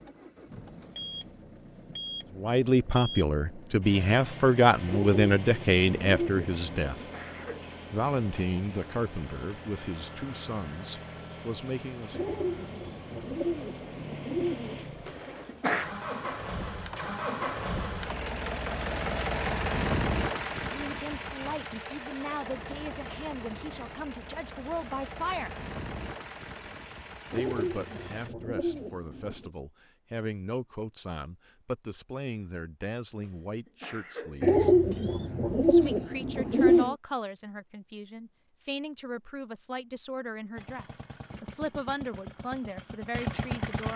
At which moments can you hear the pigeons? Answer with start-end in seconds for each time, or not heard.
4.8-7.1, 12.1-14.8, 27.3-29.5, 34.4-37.0.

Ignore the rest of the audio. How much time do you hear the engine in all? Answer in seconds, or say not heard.
32 s.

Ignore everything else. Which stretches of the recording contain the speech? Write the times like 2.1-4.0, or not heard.
2.4-7.0, 7.9-12.3, 20.6-25.5, 27.3-34.7, 35.6-43.9.